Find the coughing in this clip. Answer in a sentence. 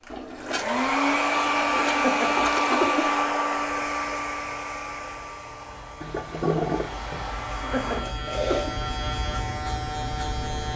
The coughing can be heard from 1.9 to 3.1 s and from 7.6 to 8.8 s.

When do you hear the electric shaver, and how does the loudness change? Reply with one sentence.
The electric shaver can be heard from 3.5 to 10.7 s, getting louder.